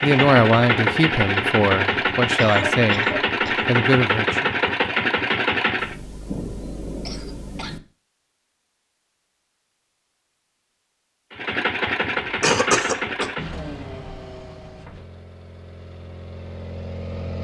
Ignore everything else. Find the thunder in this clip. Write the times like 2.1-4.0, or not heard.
5.8-7.8.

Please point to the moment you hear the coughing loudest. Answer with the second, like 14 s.
13 s.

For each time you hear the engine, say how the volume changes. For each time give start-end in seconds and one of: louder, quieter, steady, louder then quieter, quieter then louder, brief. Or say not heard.
0.0-6.0 steady
11.3-17.4 quieter then louder.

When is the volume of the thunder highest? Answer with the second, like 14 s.
6 s.